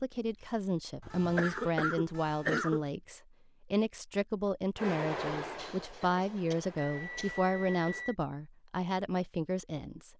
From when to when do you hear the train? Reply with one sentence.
You can hear the train from 4.8 to 8.1 s.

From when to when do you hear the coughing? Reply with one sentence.
You can hear the coughing from 1.0 to 2.8 s and from 5.5 to 7.4 s.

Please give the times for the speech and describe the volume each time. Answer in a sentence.
The speech can be heard from 0.0 to 10.1 s, at a steady volume.